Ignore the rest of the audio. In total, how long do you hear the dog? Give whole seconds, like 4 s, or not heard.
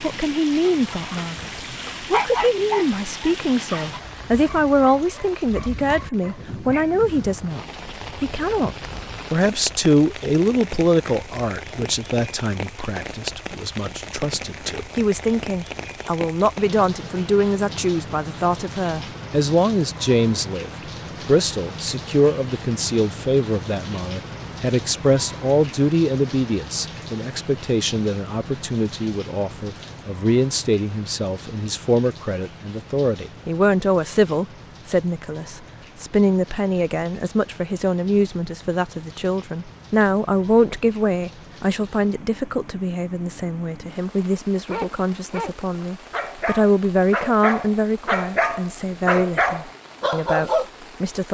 12 s.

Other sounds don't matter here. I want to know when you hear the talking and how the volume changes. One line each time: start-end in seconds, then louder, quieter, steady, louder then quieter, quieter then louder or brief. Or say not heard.
0.0-51.3 steady.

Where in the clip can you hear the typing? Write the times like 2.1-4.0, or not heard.
not heard.